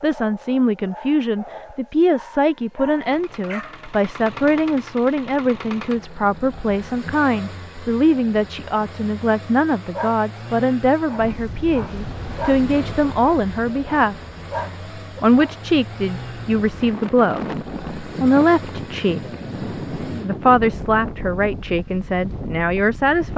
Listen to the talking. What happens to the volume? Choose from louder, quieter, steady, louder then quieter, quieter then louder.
steady.